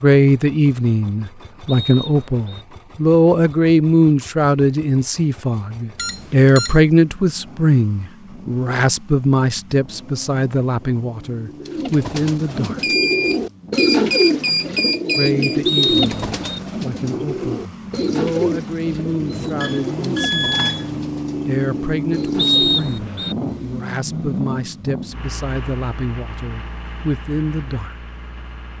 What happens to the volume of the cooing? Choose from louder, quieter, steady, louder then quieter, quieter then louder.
quieter.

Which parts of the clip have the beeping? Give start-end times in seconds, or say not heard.
6.0-6.8, 12.8-15.6, 19.6-20.9.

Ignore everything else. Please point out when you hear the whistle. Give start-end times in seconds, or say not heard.
1.6-2.6, 15.7-16.6, 22.4-23.4.